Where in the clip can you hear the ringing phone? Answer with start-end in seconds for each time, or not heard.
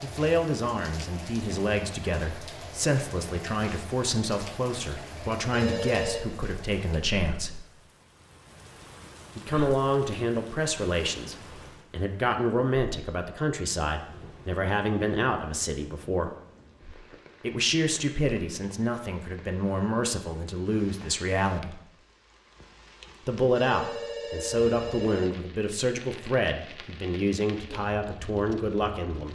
5.5-6.2, 23.6-25.4.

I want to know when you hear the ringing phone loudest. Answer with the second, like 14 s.
6 s.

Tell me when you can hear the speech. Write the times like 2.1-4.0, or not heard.
0.0-7.5, 9.3-16.3, 17.4-21.8, 23.2-29.3.